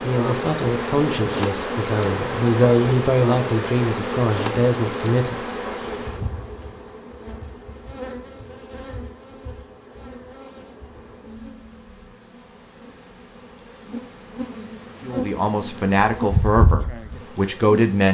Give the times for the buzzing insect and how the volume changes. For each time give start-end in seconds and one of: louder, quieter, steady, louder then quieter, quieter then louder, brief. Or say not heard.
0.0-18.0 quieter then louder.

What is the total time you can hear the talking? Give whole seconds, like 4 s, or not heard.
8 s.